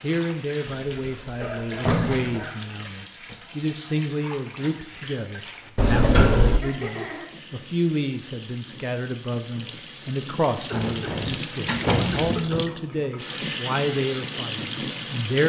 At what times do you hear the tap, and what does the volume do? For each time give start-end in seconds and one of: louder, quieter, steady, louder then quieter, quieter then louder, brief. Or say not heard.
0.0-15.4 louder.